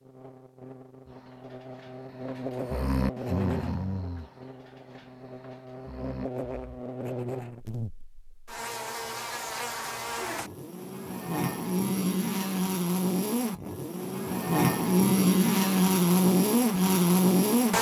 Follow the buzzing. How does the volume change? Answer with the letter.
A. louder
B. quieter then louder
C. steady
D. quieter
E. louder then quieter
A.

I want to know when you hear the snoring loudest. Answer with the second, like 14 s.
3 s.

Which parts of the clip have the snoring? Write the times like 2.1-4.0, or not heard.
1.1-6.8.